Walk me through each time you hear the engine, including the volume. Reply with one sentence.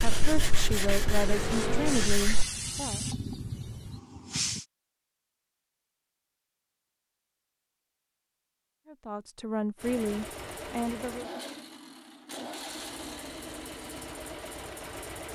The engine can be heard briefly from 0.0 to 2.1 s; and from 9.8 to 15.3 s, at a steady volume.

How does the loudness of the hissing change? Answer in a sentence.
The volume of the hissing goes up, then down.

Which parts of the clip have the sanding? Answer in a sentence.
You can hear the sanding from 0.0 to 2.5 s.